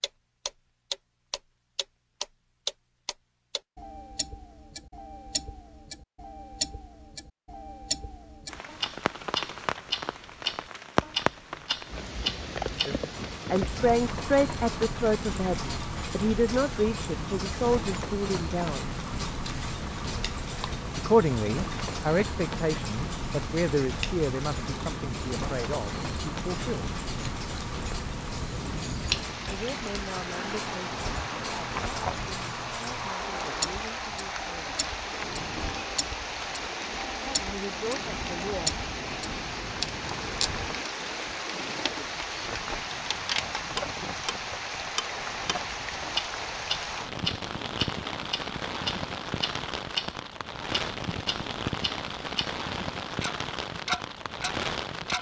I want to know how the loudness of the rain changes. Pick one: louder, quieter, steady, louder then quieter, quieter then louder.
steady.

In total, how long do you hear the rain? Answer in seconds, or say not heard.
47 s.